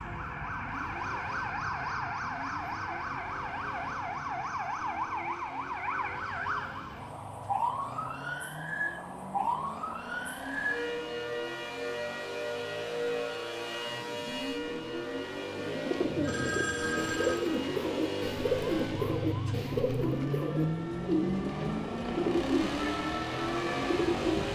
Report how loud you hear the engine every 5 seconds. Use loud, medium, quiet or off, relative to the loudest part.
quiet, quiet, medium, loud, loud.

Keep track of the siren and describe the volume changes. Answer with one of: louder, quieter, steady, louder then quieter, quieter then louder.
quieter.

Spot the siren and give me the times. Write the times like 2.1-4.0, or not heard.
0.0-24.5.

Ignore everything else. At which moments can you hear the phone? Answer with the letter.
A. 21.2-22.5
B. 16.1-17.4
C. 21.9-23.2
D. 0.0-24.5
B.